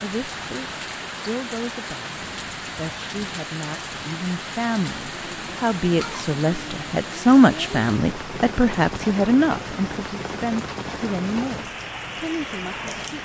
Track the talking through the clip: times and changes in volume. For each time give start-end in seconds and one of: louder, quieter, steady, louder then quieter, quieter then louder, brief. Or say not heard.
0.0-13.1 louder then quieter.